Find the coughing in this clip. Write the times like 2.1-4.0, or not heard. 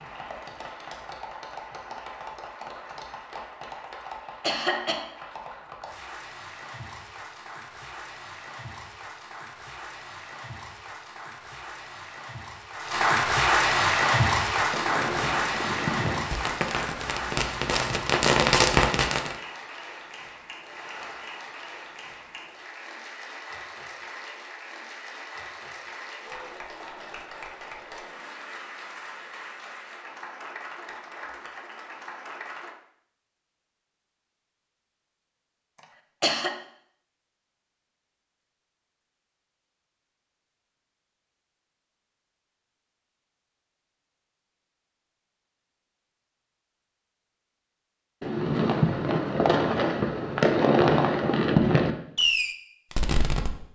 4.0-5.0, 35.8-36.5.